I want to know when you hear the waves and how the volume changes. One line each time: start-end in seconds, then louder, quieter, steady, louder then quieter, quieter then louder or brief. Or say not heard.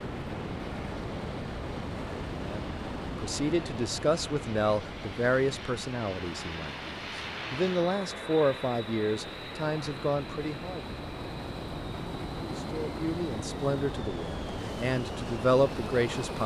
0.0-16.4 quieter then louder.